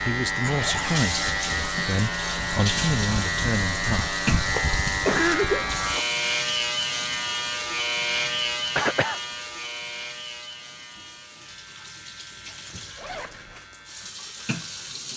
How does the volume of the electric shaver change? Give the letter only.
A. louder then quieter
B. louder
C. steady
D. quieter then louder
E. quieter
E.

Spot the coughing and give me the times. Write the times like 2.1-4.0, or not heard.
4.0-6.0, 8.8-9.2.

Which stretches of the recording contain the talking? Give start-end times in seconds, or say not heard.
0.0-4.2.